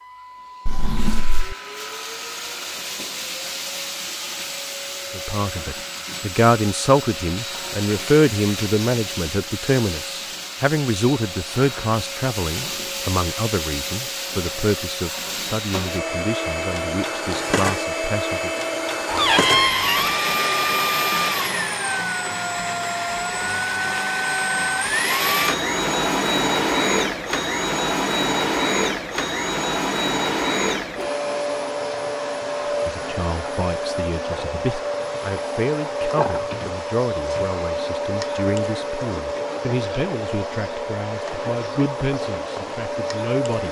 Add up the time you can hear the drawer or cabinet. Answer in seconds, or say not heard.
3 s.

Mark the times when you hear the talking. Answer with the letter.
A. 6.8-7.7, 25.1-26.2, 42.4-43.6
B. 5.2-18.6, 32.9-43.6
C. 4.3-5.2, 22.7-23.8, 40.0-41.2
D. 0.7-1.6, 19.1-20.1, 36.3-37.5
B.